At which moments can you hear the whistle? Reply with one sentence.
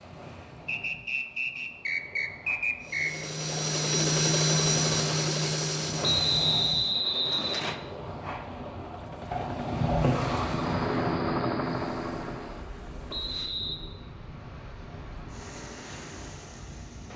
You can hear the whistle from 0.7 to 3.2 s, from 6.0 to 7.8 s and from 13.1 to 13.8 s.